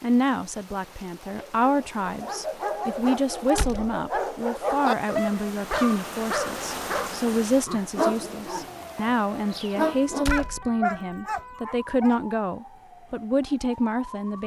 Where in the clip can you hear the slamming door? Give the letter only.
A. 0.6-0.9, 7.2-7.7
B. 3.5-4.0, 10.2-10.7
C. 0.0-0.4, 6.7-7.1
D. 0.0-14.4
B.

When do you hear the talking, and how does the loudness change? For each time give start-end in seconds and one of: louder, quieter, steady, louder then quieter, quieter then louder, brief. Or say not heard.
0.0-14.4 steady.